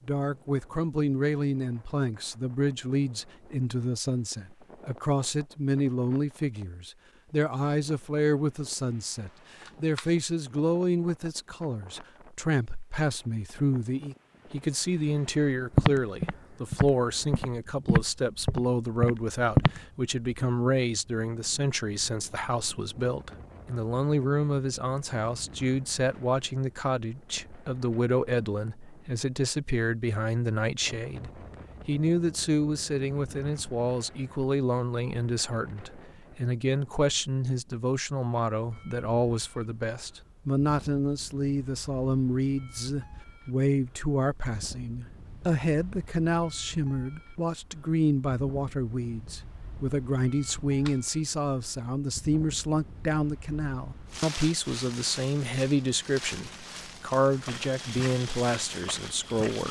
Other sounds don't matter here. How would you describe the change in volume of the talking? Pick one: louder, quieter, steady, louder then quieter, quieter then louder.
steady.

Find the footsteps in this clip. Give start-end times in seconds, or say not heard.
15.7-19.8, 57.5-59.6.